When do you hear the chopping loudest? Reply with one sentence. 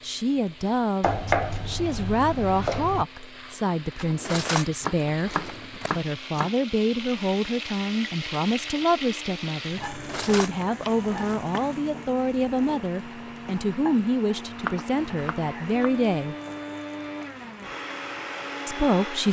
The loudest moment of the chopping is at 1 second.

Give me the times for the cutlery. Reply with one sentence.
You can hear the cutlery from 3.9 to 5.9 s and from 9.8 to 11.4 s.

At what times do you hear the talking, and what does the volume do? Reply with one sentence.
You can hear the talking from 0.0 to 16.4 s, at a steady volume; and briefly from 18.6 to 19.2 s.